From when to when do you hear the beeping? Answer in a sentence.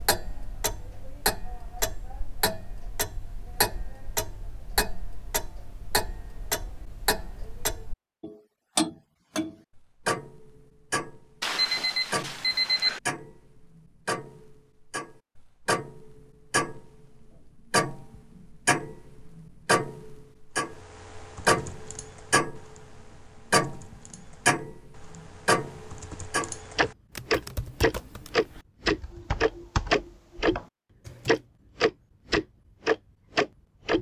The beeping can be heard from 11.4 to 13.0 s.